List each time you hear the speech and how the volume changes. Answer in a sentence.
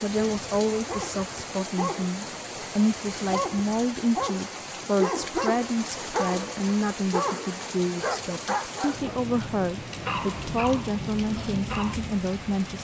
You can hear the speech from 0.0 to 12.7 s, at a steady volume.